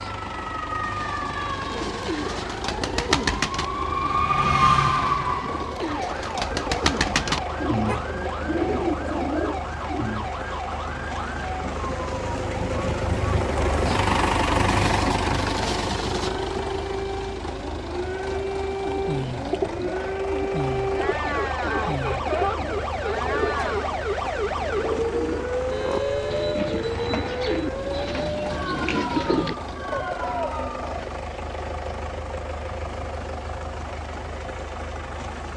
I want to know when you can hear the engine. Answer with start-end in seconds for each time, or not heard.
0.0-35.5.